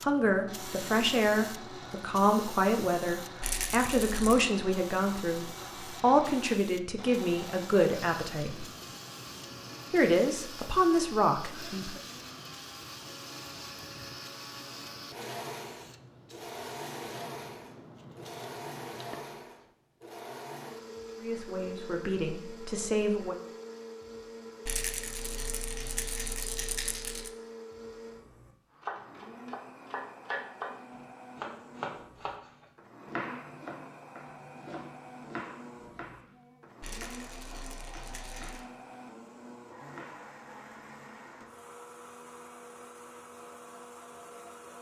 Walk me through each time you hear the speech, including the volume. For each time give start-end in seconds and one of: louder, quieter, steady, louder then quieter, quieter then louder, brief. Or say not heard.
0.0-8.7 steady
9.9-12.0 brief
21.1-23.4 brief.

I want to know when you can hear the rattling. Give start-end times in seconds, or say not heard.
3.4-4.5, 24.6-27.3, 36.8-38.6.